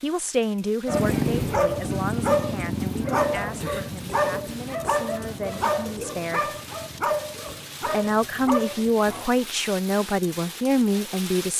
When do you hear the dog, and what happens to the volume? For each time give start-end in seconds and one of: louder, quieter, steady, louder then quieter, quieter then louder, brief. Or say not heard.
0.8-9.2 quieter.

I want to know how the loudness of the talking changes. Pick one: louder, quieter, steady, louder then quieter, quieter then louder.
quieter then louder.